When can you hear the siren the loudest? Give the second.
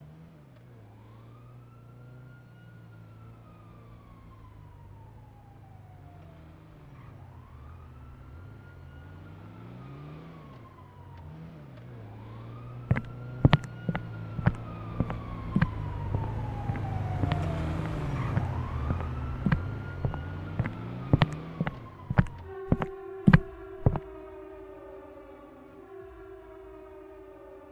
18 s.